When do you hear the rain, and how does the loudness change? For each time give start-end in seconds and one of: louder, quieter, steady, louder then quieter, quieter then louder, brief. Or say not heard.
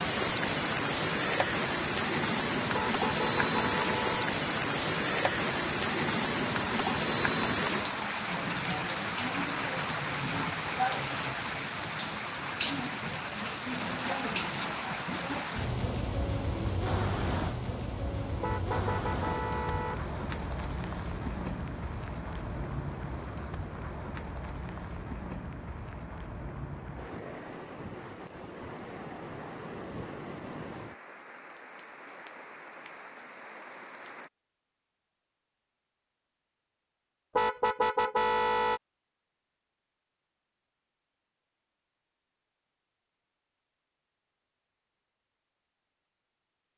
0.0-34.3 quieter.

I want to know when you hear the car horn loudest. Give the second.
38 s.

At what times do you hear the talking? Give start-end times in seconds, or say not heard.
not heard.